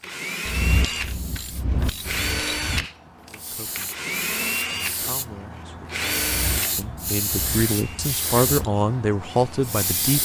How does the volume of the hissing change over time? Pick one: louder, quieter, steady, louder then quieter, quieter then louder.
louder.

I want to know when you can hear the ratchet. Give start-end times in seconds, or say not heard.
0.5-2.9, 6.2-8.7.